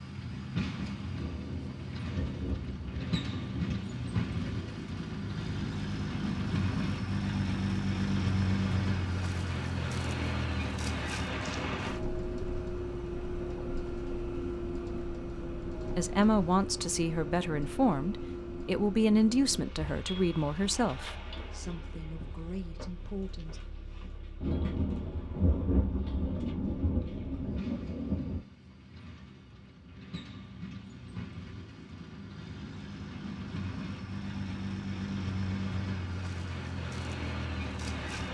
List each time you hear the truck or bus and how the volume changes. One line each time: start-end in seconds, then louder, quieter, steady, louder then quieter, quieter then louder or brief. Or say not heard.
0.0-38.2 quieter then louder.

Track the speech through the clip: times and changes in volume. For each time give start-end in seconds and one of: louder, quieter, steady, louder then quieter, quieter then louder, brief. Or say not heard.
15.9-23.6 quieter.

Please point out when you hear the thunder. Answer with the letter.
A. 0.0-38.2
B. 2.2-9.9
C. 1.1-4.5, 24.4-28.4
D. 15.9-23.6
C.